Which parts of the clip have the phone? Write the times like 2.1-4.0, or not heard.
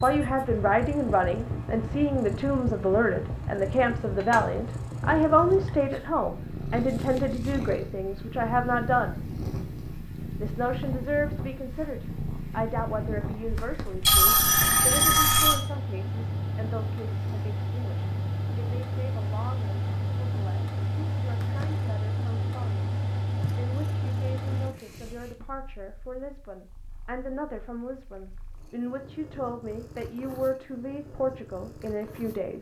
13.5-15.6.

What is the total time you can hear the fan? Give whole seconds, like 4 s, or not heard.
25 s.